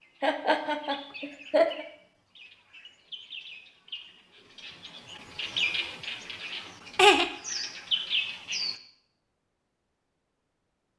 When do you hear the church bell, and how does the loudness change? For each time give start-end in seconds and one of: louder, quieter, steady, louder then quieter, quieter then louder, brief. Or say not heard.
not heard.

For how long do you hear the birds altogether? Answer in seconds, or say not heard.
9 s.